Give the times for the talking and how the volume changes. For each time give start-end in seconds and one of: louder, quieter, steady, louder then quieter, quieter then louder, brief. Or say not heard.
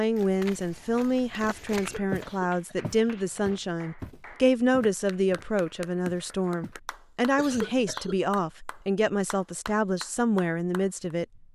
0.0-11.2 steady.